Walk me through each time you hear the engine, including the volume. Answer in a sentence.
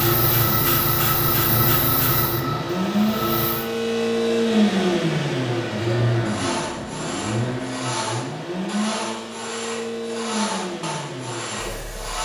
The engine can be heard from 0.0 to 12.1 s, getting louder then quieter.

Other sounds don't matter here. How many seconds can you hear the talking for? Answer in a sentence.
You can't hear the talking here.